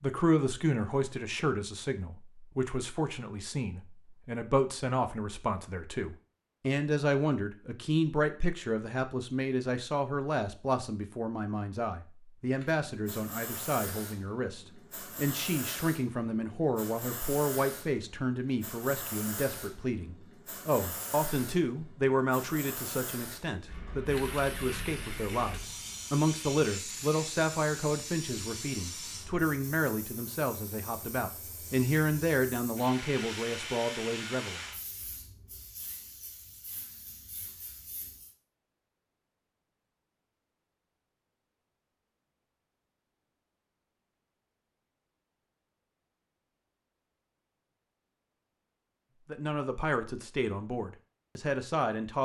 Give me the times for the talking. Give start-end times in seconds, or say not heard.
0.0-34.6, 49.2-52.2.